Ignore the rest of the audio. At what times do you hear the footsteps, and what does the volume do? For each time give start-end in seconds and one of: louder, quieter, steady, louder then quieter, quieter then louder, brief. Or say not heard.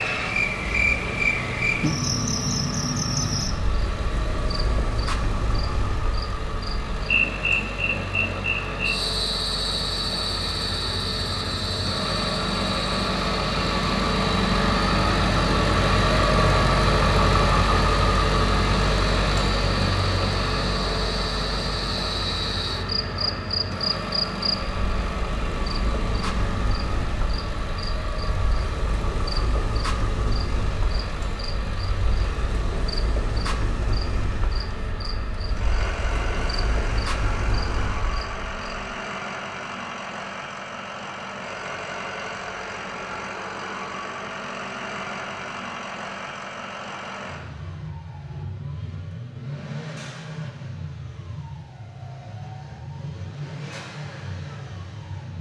not heard.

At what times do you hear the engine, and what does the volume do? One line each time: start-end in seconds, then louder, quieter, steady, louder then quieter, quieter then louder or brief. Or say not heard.
0.0-55.3 louder then quieter.